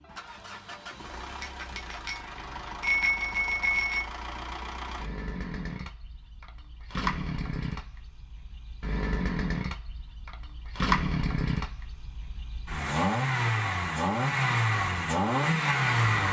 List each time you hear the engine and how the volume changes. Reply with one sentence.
You can hear the engine from 0.0 to 16.2 s, getting louder.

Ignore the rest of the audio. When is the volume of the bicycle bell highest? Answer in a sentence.
The loudest moment of the bicycle bell is at 3 seconds.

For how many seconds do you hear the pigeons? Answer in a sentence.
The pigeons can't be heard in this clip.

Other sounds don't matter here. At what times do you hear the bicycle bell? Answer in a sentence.
The bicycle bell can be heard from 1.4 to 4.0 s.